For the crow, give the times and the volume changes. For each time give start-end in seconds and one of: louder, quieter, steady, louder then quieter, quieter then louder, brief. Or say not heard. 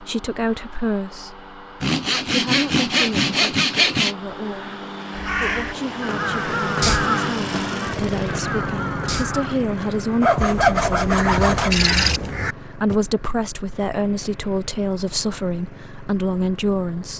5.2-12.9 quieter then louder.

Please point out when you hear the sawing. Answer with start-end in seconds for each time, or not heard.
1.8-4.2, 10.2-12.2.